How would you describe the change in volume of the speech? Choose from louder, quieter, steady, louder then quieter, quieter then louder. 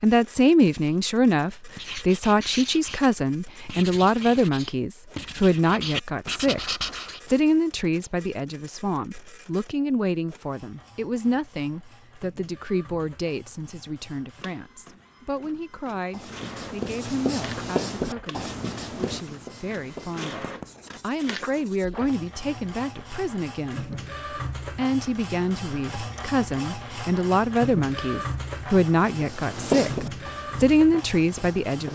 quieter then louder.